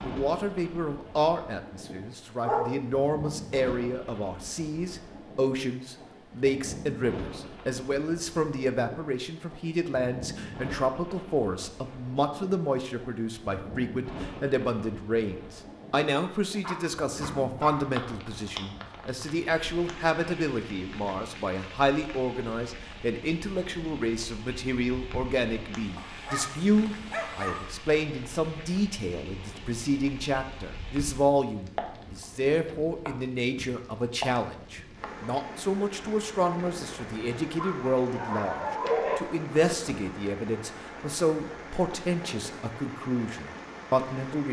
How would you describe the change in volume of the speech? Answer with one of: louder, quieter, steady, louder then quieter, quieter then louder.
steady.